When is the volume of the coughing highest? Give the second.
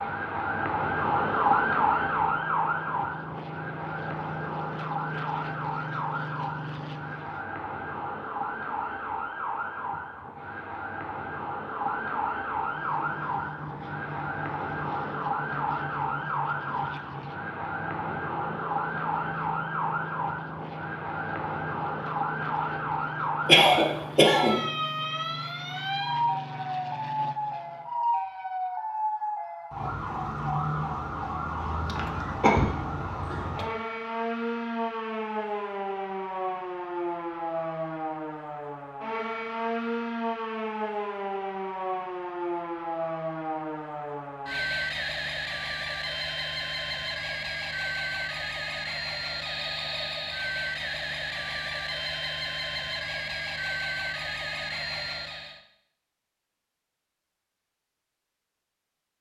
24 s.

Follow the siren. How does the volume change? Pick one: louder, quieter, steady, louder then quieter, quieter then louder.
steady.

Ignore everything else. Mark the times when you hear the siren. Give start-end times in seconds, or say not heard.
0.0-55.6.